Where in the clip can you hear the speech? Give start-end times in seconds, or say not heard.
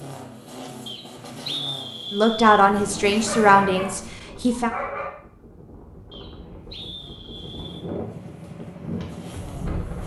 2.1-4.7.